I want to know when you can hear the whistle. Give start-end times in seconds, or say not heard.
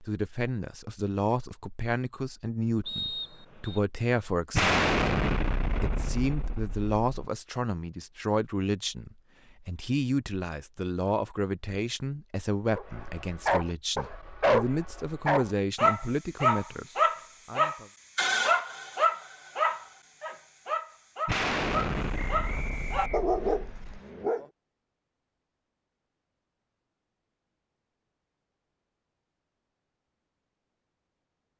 2.9-3.8, 22.3-23.6.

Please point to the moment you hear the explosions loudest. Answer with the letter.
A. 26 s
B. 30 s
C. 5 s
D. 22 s
C.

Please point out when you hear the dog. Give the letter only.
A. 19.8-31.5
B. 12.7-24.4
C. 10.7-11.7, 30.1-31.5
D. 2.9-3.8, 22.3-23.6
B.